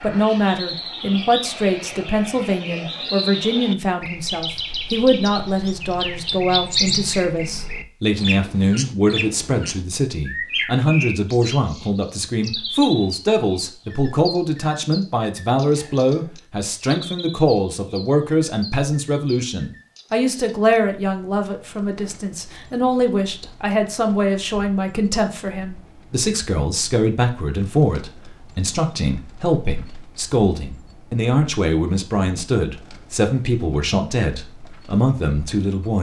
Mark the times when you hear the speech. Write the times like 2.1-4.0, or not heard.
0.0-35.9.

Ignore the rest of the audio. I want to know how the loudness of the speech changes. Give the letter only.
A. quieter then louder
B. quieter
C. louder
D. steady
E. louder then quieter
D.